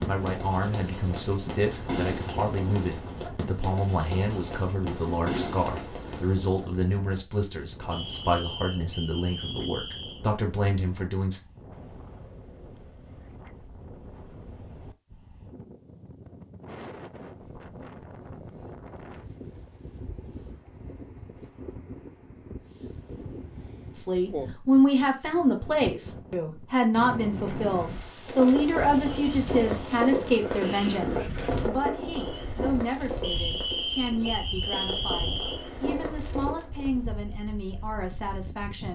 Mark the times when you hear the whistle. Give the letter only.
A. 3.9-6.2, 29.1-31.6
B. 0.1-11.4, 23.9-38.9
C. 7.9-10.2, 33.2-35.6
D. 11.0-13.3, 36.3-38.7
C.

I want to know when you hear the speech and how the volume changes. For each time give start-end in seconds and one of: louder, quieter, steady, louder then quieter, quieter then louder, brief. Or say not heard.
0.1-11.4 steady
23.9-38.9 quieter.